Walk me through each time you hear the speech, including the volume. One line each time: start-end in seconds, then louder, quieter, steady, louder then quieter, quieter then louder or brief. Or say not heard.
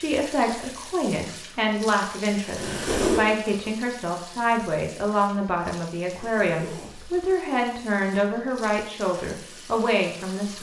0.0-10.5 steady.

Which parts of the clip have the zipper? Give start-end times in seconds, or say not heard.
2.5-3.2, 6.2-7.2.